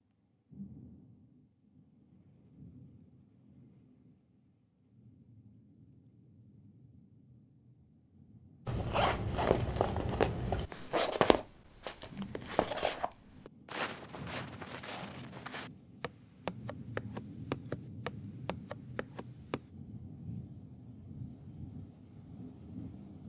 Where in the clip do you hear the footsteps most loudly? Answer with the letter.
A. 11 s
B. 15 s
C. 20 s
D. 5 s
A.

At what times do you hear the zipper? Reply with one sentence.
The zipper can be heard from 8.7 to 10.7 s.